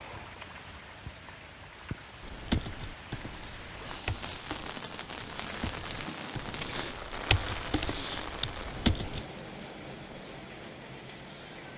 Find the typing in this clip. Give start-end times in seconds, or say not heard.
2.2-9.2.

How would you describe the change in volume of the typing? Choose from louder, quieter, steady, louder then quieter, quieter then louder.
louder.